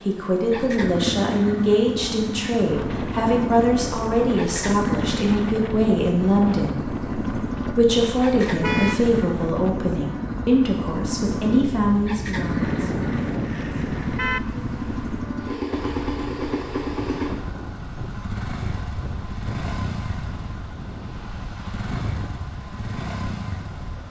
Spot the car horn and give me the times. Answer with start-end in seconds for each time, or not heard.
8.6-9.1, 12.3-14.4.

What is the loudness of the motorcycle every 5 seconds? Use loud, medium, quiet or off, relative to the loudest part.
loud, loud, loud, loud, medium.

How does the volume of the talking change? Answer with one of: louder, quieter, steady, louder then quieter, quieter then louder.
steady.